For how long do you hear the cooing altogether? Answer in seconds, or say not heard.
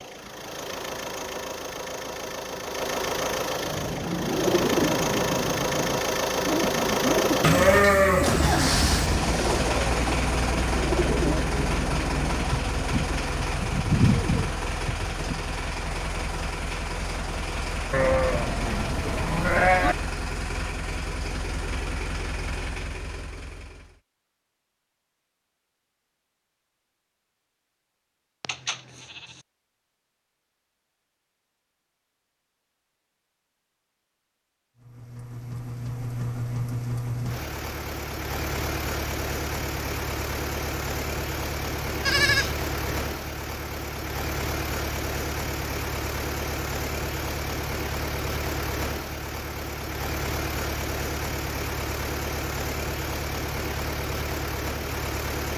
12 s.